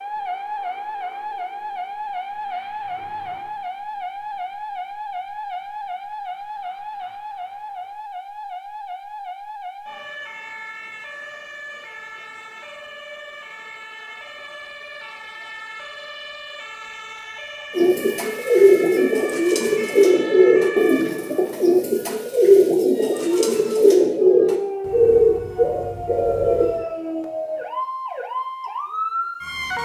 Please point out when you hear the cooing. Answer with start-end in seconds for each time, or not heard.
17.8-26.9.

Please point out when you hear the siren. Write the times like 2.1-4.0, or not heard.
0.0-29.7.